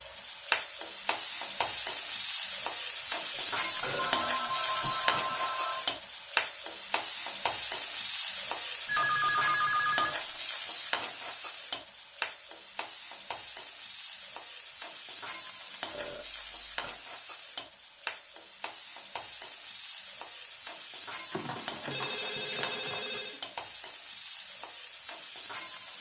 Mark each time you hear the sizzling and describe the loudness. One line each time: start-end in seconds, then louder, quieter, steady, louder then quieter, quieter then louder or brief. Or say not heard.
0.0-25.9 quieter.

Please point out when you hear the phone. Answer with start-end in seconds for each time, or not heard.
4.0-5.8, 8.8-10.2, 21.3-23.4.